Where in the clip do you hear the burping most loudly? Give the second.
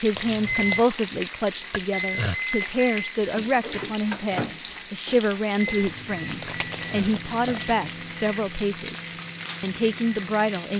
2 s.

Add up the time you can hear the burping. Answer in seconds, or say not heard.
2 s.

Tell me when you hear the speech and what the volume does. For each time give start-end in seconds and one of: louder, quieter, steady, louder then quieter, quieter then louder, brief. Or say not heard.
0.0-10.7 steady.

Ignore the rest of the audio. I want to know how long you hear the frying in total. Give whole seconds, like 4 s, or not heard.
11 s.